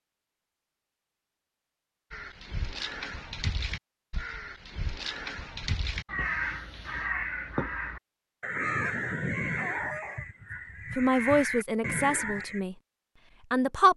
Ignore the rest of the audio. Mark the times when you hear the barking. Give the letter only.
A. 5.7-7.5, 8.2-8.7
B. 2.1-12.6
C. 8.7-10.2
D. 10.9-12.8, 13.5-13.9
C.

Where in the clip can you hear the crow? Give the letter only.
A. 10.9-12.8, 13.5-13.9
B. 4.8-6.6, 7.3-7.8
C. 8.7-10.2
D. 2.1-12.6
D.